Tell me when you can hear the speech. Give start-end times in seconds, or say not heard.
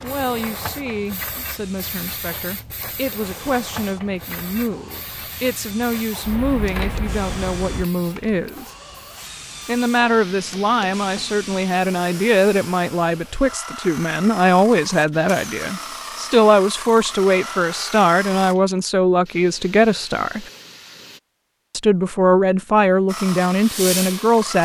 0.0-8.7, 9.7-20.4, 21.7-24.6.